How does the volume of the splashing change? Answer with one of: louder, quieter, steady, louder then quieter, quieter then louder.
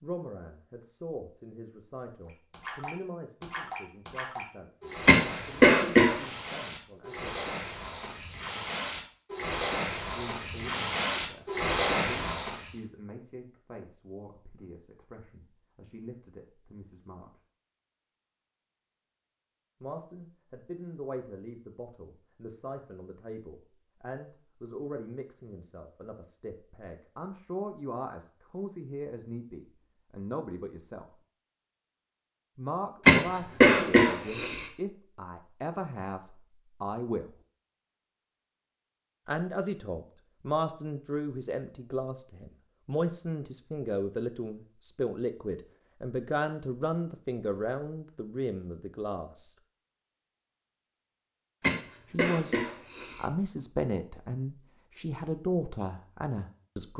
louder.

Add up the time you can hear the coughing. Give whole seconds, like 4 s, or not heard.
4 s.